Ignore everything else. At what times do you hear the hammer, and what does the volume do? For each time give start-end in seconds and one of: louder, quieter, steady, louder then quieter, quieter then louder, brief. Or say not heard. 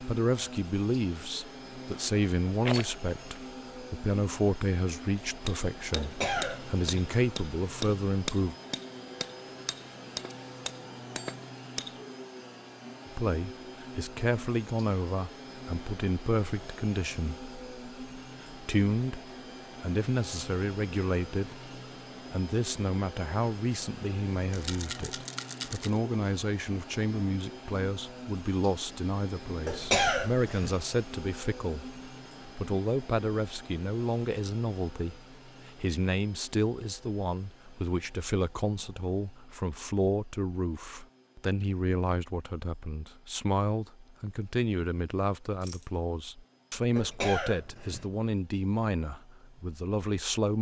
5.3-12.0 steady.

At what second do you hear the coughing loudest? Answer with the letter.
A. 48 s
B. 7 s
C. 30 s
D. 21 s
C.